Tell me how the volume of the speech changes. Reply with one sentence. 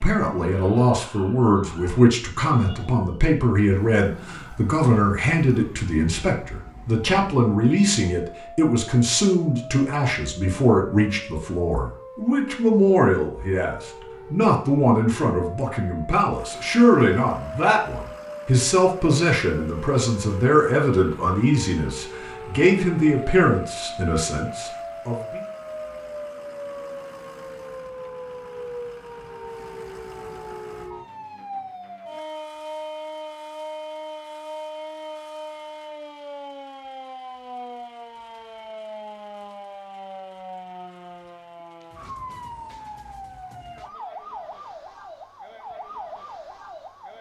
The loudness of the speech stays about the same.